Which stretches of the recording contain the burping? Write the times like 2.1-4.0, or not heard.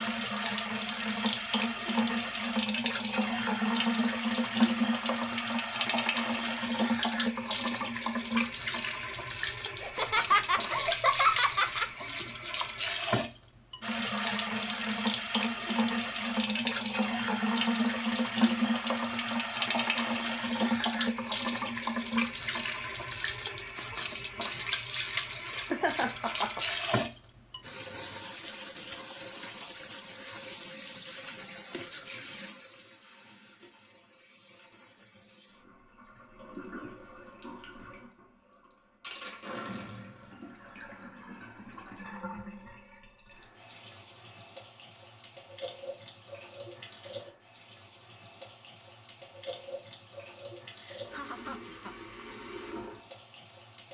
not heard.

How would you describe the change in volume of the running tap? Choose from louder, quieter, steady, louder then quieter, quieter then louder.
quieter.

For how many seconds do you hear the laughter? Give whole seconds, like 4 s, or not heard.
5 s.